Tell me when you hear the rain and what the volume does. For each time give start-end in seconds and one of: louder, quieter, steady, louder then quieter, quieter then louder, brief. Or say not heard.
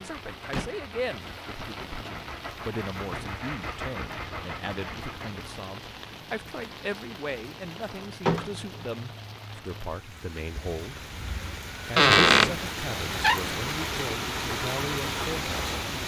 0.0-16.0 louder.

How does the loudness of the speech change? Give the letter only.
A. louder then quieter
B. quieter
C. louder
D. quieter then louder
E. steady
E.